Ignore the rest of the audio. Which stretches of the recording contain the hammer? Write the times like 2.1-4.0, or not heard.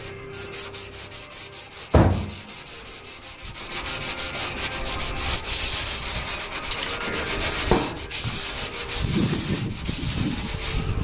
not heard.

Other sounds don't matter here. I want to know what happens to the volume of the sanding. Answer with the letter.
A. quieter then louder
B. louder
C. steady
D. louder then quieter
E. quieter
B.